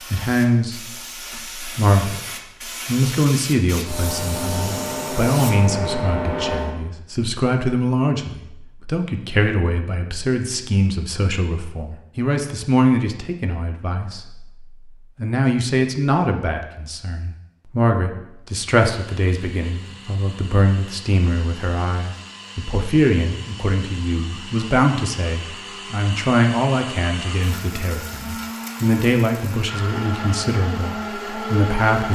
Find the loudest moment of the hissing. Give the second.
6 s.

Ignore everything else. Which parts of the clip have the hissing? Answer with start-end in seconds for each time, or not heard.
0.0-6.8.